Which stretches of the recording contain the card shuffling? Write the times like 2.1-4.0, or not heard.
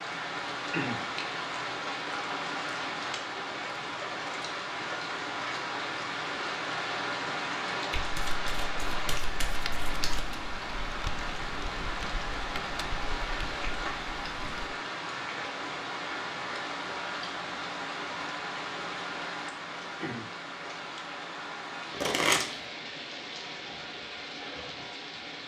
7.9-10.4, 21.9-22.4.